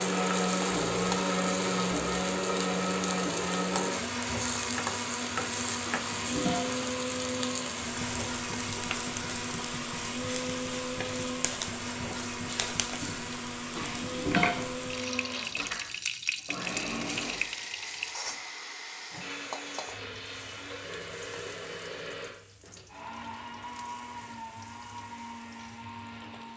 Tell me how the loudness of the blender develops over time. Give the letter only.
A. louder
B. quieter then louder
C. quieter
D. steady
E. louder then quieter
C.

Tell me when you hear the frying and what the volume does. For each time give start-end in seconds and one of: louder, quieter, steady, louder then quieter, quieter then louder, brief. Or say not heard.
0.0-26.5 quieter.